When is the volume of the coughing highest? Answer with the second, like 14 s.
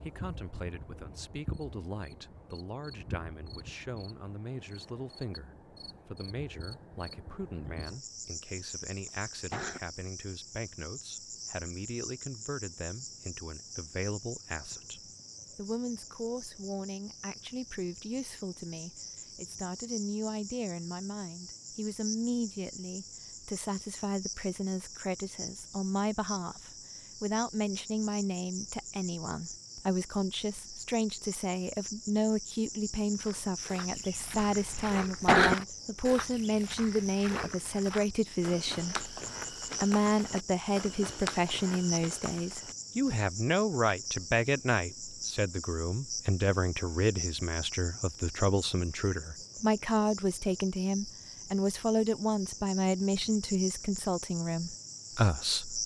35 s.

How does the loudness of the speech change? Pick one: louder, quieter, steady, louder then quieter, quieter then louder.
louder.